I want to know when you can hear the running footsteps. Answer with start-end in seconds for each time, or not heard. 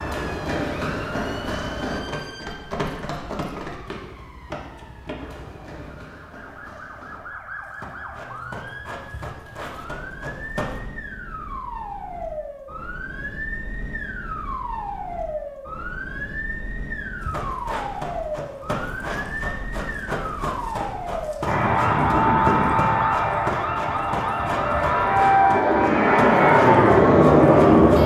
0.0-10.8, 17.2-28.0.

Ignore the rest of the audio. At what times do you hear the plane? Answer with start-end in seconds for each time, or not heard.
21.4-28.0.